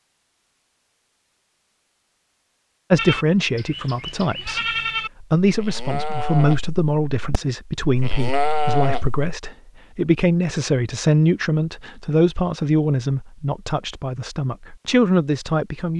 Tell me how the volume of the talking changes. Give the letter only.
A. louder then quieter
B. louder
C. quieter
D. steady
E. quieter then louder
D.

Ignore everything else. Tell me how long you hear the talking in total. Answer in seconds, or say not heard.
13 s.